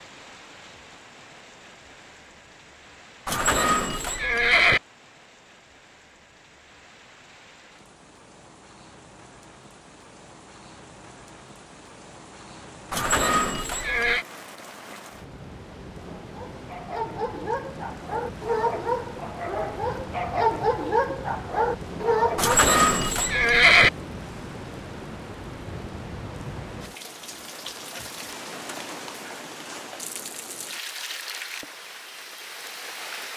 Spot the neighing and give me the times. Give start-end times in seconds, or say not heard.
3.2-4.8, 12.9-14.2, 22.4-23.9.